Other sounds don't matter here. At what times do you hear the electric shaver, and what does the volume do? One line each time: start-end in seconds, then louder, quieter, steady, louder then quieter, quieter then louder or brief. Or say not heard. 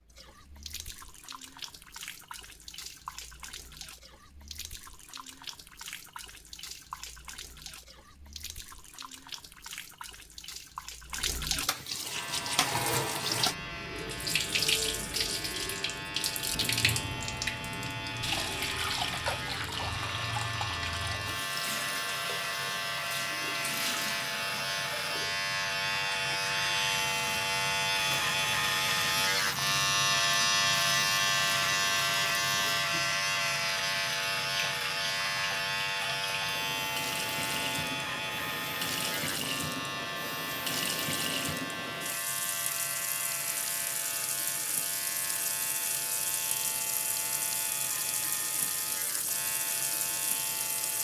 12.1-50.9 louder then quieter.